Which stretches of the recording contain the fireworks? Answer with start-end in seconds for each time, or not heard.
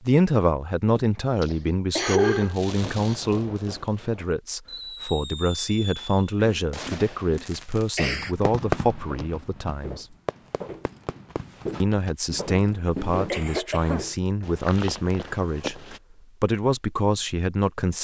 2.4-13.4.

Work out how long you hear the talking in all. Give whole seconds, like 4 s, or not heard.
16 s.